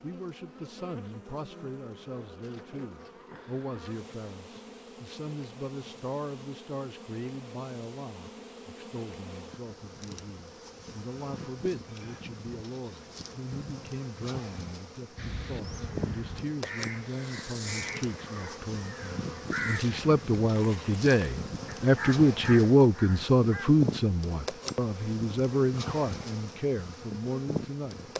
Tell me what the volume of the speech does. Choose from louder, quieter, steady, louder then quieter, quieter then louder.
louder.